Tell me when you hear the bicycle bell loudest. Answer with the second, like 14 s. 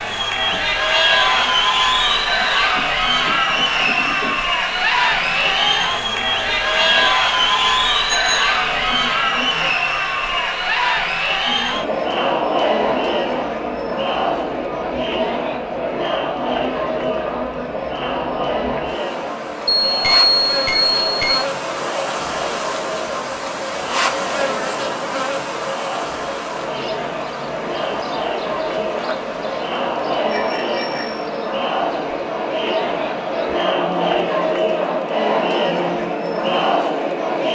20 s.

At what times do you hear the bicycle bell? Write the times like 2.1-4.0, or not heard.
8.1-8.6, 19.9-21.4, 30.2-31.3.